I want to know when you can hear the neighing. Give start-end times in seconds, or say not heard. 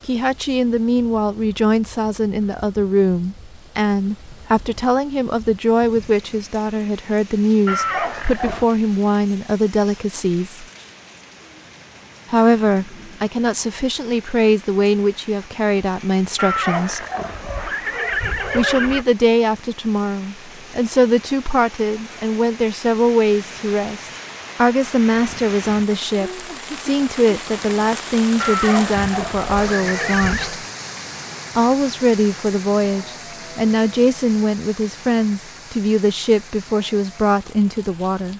7.7-8.7, 16.4-19.1, 28.4-30.6.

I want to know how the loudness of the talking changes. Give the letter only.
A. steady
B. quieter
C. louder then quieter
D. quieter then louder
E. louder
A.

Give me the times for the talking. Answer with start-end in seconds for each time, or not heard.
0.1-10.7, 12.3-17.1, 18.5-30.6, 31.6-38.3.